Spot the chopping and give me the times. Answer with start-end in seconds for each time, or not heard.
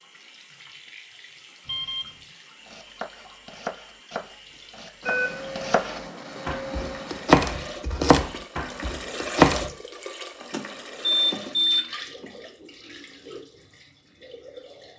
2.6-9.7.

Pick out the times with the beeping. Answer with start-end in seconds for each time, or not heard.
1.6-2.1, 5.0-7.3, 10.4-12.2.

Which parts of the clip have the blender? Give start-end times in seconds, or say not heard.
not heard.